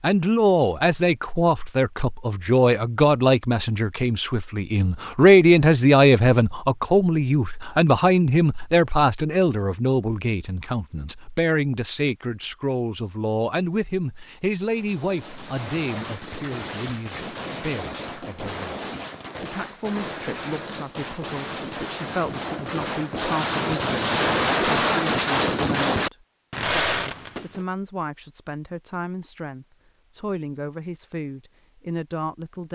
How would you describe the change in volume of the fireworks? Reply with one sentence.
The loudness of the fireworks goes up.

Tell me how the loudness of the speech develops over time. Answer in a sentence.
The volume of the speech goes down.